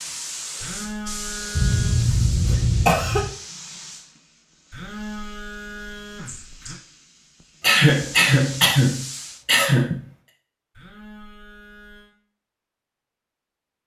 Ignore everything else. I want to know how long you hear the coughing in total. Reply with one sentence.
The coughing can be heard for 4 seconds in total.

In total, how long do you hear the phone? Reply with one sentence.
The phone can be heard for 5 seconds in total.